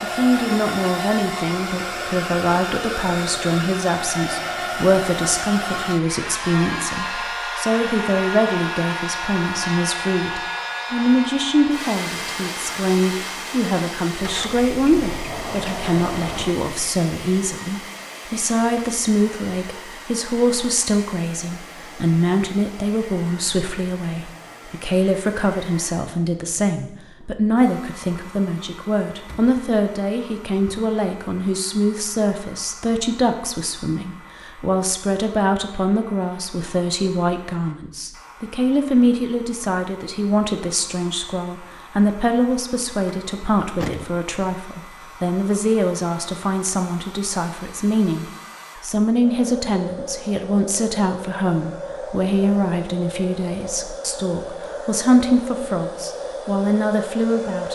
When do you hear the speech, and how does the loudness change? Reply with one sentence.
The speech can be heard from 0.0 to 57.7 s, at a steady volume.